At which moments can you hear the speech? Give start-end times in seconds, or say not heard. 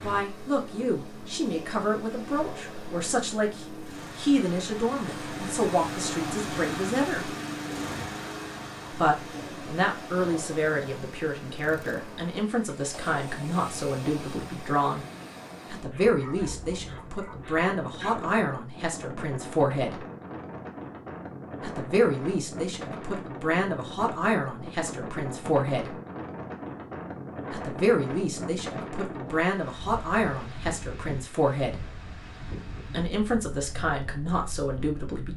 0.0-7.3, 8.9-15.1, 15.7-20.0, 21.6-25.9, 27.5-31.9, 32.9-35.3.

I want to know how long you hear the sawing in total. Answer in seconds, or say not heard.
not heard.